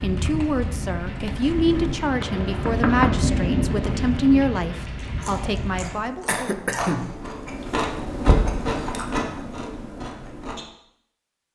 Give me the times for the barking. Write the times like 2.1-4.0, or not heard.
not heard.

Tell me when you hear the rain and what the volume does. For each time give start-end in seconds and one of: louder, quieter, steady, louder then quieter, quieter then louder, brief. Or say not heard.
0.0-6.0 louder then quieter.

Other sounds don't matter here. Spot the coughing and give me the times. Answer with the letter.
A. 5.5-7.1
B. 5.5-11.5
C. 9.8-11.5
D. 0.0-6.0
A.